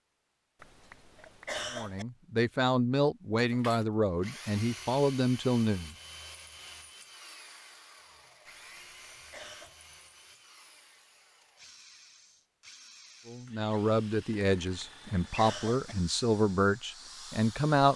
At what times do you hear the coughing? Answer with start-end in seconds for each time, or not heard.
0.6-2.0, 8.4-9.8, 14.6-15.9.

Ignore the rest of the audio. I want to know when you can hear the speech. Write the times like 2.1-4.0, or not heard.
1.7-6.0, 13.2-17.9.